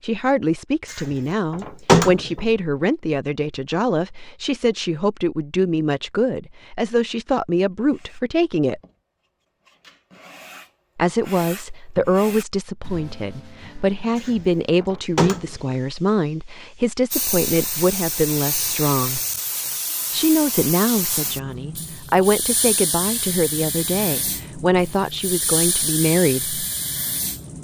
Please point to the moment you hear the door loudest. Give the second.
2 s.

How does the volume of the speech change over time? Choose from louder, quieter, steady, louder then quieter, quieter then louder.
steady.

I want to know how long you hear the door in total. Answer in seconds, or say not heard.
3 s.